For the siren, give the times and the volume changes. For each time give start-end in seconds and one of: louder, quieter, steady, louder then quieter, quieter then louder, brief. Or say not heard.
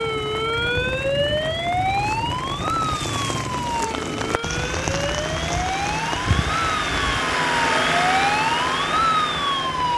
0.0-9.9 quieter then louder.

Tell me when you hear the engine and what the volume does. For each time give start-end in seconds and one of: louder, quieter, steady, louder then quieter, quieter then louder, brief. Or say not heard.
0.0-9.9 louder.